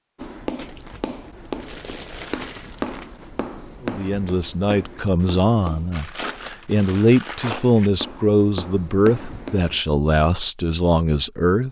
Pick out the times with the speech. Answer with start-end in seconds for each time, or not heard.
3.8-11.6.